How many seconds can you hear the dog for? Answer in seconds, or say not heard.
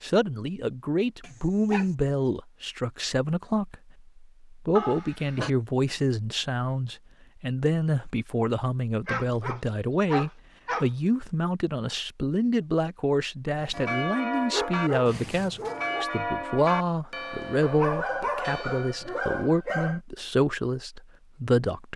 7 s.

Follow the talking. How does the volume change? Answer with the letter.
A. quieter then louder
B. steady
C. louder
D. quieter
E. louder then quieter
B.